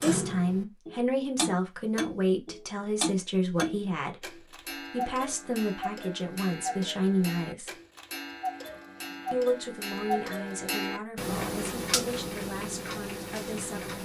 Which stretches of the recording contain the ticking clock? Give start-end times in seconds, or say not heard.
0.0-14.0.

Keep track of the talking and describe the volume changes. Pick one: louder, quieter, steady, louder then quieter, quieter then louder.
quieter.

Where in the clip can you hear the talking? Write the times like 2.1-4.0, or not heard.
0.0-7.8, 9.3-14.0.